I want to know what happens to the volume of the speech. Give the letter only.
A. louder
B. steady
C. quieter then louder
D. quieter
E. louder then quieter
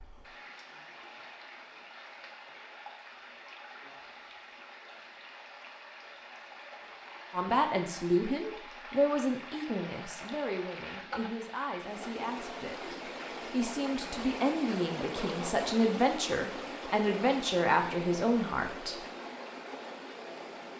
C.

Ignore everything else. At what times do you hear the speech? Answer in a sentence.
The speech can be heard from 7.3 to 19.0 s.